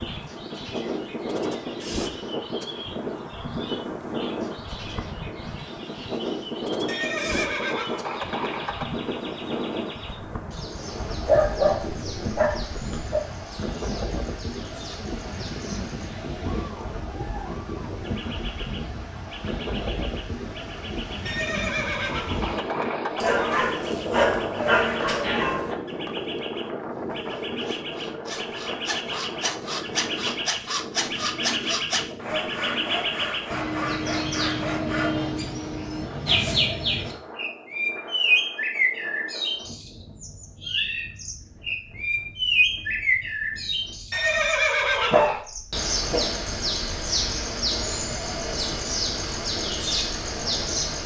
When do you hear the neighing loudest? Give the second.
45 s.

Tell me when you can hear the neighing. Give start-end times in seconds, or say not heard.
6.8-8.9, 21.2-23.2, 44.1-45.5.